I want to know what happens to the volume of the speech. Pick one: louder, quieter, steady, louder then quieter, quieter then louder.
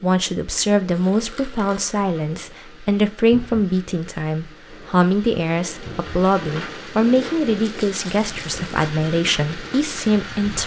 steady.